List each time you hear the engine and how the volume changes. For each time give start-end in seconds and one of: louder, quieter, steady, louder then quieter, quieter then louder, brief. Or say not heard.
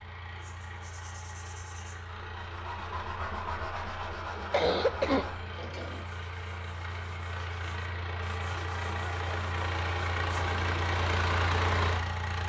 0.0-12.4 louder.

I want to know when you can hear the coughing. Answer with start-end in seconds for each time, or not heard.
4.5-6.0.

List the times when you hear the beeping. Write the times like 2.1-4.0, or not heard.
not heard.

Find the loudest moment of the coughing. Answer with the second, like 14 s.
5 s.